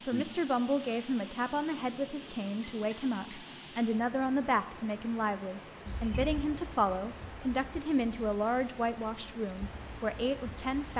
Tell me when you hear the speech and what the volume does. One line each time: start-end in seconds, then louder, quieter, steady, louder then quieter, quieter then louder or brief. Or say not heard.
0.1-10.9 steady.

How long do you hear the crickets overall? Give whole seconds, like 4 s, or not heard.
11 s.